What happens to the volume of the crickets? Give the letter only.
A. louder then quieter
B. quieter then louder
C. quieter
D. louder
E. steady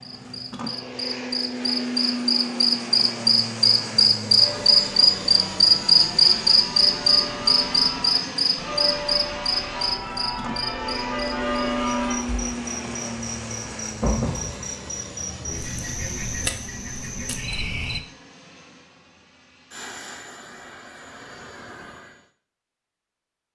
A.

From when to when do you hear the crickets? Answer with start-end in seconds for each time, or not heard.
0.0-18.0.